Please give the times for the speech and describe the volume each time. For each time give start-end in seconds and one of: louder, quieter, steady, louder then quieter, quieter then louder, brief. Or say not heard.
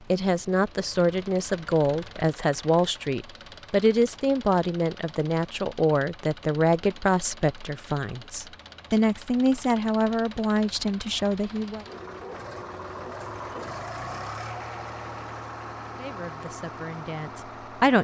0.1-11.8 steady
15.9-17.9 brief.